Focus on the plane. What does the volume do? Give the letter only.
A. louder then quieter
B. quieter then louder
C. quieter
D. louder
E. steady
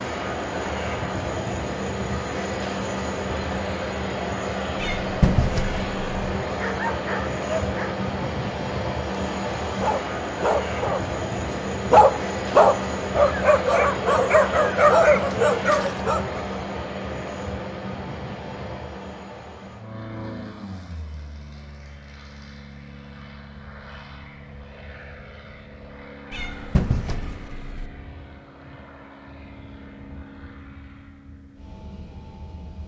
C.